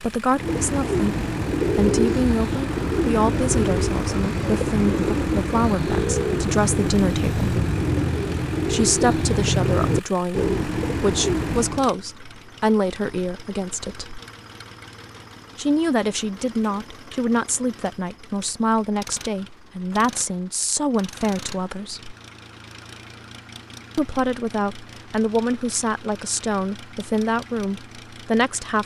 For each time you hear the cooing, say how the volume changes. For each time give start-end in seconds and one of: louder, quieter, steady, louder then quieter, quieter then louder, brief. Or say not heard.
0.3-11.9 steady.